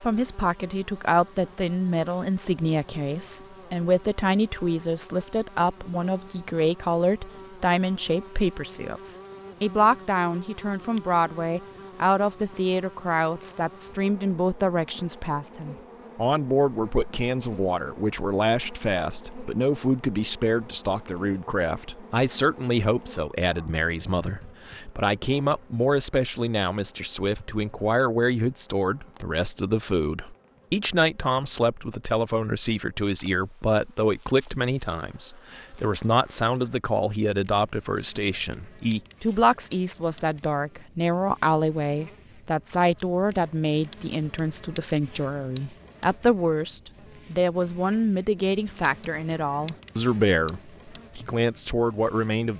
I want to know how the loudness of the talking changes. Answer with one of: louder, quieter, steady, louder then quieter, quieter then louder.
steady.